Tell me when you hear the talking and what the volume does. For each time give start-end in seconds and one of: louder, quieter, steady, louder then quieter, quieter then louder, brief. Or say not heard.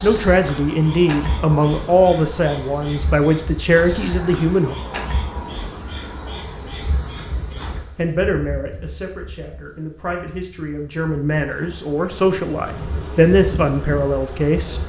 0.0-4.8 steady
8.0-14.8 louder.